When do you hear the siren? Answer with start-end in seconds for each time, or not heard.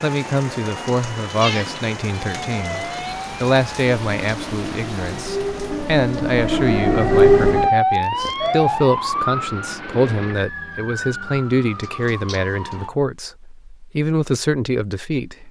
0.0-12.9.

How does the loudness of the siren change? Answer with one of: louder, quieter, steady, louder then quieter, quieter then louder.
louder then quieter.